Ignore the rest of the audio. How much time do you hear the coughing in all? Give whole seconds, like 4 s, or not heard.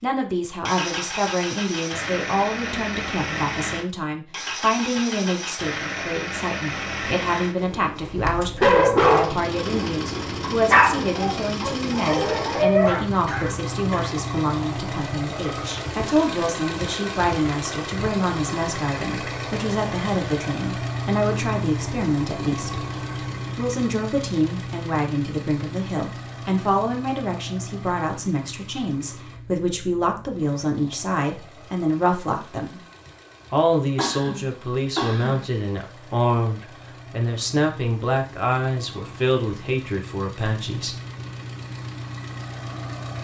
3 s.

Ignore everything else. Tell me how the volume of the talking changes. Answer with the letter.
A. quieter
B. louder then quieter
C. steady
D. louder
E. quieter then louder
C.